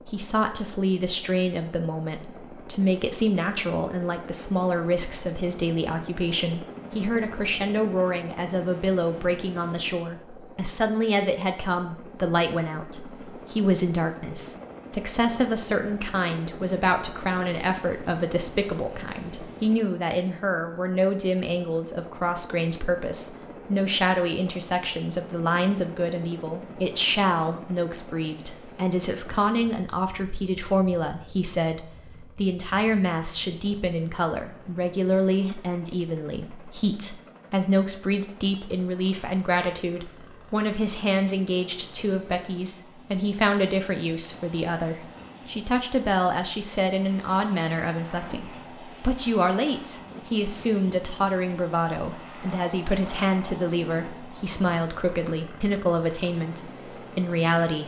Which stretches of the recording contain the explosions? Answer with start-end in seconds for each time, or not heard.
not heard.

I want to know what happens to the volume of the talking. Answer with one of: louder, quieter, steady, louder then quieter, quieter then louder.
steady.